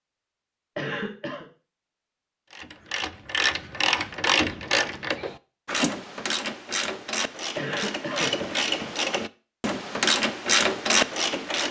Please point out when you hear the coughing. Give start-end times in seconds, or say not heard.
0.8-1.4, 7.5-8.3.